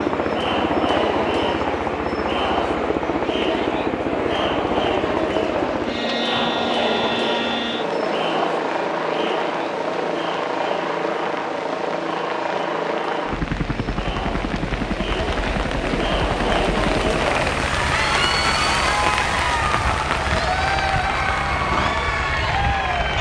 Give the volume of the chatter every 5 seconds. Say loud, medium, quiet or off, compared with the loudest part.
loud, loud, medium, loud, loud.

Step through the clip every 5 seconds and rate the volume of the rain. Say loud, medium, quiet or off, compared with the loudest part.
off, medium, medium, loud, loud.